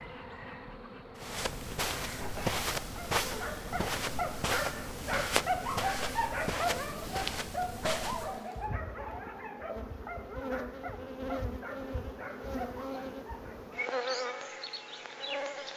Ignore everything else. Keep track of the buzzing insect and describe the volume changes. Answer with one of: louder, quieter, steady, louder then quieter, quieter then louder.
louder.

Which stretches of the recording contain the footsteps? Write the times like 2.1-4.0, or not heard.
1.1-8.4.